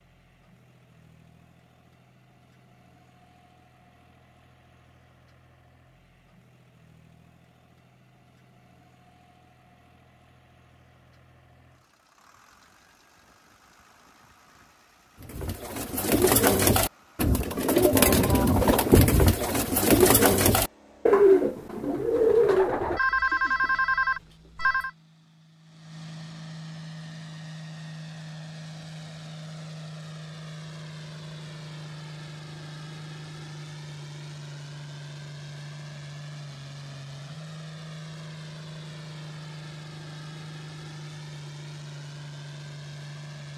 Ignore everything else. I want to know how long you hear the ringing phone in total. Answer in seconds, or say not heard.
2 s.